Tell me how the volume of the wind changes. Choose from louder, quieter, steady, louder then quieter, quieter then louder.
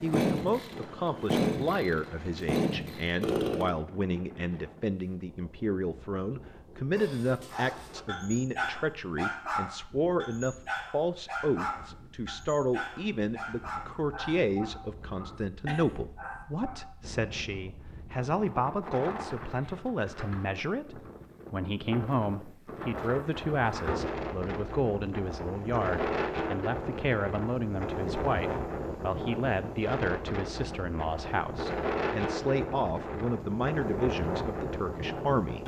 quieter then louder.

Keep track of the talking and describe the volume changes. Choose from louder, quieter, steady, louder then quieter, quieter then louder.
steady.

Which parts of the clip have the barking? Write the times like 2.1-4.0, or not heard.
7.0-16.9.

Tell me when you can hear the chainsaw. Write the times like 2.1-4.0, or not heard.
0.1-3.8.